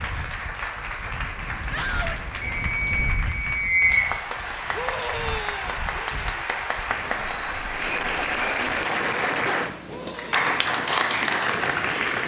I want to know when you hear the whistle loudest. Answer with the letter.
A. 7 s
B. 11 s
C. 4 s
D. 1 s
C.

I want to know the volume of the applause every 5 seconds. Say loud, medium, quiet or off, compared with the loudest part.
medium, loud, loud.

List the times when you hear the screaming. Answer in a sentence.
The screaming can be heard from 1.7 to 2.2 s, from 4.7 to 5.8 s and from 9.8 to 10.4 s.